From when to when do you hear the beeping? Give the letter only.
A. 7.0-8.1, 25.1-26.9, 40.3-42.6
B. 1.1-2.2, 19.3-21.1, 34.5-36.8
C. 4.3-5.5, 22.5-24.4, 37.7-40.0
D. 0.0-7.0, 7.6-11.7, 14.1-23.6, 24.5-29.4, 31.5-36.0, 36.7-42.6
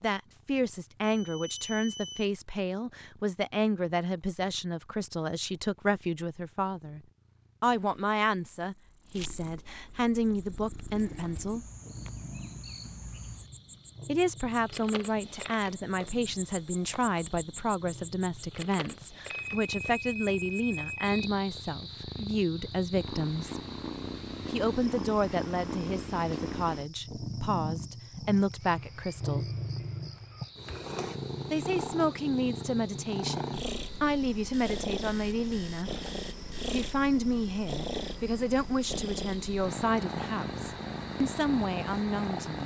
B.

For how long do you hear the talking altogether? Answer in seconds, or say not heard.
36 s.